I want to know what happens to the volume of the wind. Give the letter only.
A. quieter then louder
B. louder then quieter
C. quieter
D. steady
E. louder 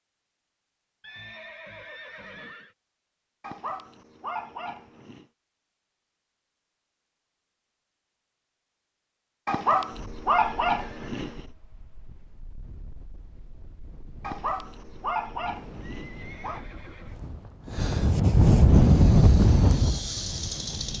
E.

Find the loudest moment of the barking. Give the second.
10 s.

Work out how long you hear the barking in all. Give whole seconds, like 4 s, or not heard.
6 s.